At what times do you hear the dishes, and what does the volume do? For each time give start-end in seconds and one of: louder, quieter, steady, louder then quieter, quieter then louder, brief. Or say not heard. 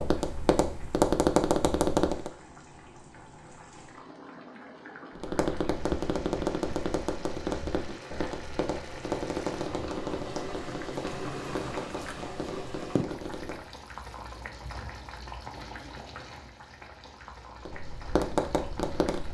not heard.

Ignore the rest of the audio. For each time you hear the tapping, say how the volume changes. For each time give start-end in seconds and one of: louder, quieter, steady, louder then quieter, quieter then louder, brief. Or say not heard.
0.0-2.3 brief
5.2-13.7 quieter
17.6-19.2 brief.